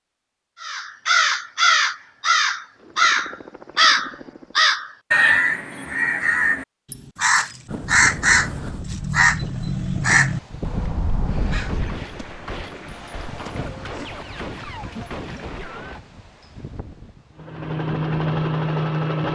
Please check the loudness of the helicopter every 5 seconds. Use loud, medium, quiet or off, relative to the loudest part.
quiet, off, off, loud.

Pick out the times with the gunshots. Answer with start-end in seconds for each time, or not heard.
11.7-16.0.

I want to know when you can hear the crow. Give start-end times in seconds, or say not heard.
0.6-12.0.